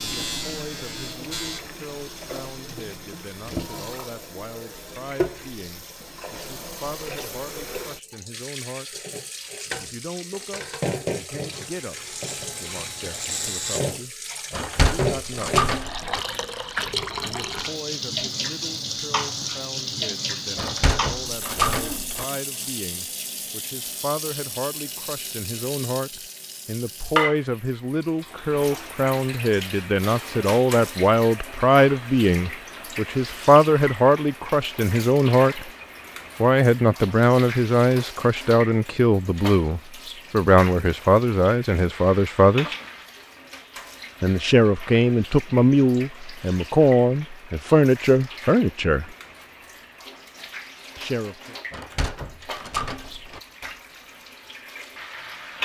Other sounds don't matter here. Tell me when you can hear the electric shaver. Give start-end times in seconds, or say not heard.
0.0-1.6, 11.5-13.8.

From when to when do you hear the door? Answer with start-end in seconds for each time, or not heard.
14.5-16.2, 20.6-22.2, 51.7-53.4.